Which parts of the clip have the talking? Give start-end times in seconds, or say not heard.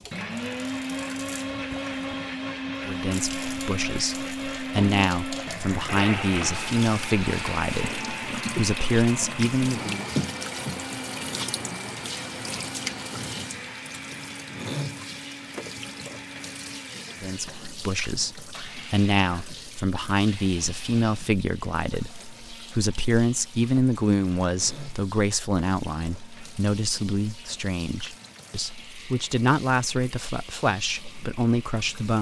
2.9-10.0, 17.2-32.1.